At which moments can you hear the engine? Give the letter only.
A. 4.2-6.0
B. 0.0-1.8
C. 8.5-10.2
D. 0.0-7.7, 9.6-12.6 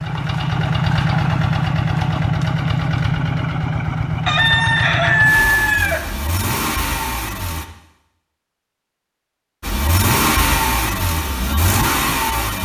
D.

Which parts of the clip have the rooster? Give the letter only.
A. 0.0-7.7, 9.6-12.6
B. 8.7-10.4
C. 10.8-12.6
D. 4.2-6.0
D.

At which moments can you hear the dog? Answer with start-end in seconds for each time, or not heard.
not heard.